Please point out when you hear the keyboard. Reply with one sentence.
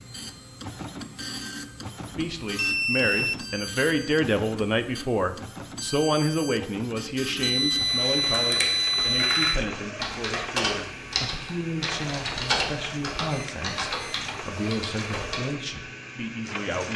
The keyboard can be heard from 8.2 to 15.4 s.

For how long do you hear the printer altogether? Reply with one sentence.
You can hear the printer for 17 seconds altogether.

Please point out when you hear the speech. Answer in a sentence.
The speech can be heard from 2.1 to 16.9 s.